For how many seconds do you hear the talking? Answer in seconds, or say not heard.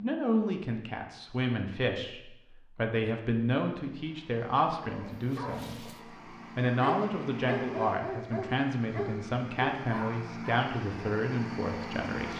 12 s.